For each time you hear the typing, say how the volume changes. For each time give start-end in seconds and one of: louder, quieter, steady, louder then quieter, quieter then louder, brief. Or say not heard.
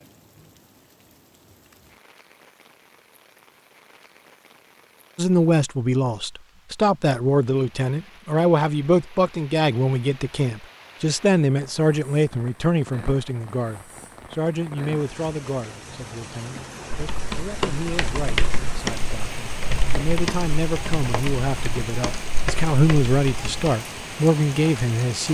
16.9-23.8 quieter.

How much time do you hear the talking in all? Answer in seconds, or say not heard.
20 s.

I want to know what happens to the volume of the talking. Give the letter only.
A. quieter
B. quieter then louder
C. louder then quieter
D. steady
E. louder
B.